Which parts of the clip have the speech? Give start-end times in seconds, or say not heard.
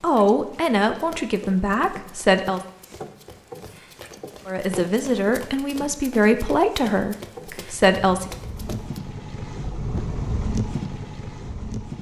0.0-2.6, 4.5-8.3.